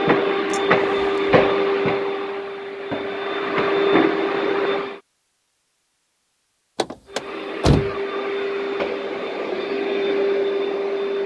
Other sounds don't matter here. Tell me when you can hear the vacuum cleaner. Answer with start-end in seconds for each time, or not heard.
0.0-5.0, 7.0-11.2.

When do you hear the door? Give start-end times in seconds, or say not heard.
0.5-1.3, 6.8-8.0.